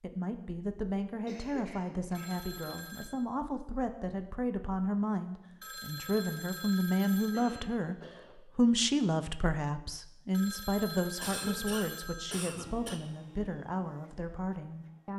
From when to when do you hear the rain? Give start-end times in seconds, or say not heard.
not heard.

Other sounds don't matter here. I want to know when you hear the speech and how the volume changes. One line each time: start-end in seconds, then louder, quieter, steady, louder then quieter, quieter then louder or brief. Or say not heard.
0.0-15.1 louder then quieter.